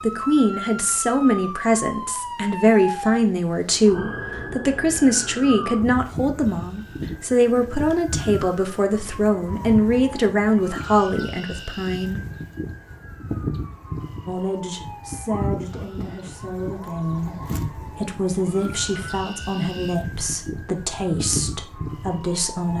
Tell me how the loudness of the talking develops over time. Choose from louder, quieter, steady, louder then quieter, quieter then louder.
quieter.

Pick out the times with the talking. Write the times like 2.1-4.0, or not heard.
0.0-12.2, 14.2-22.7.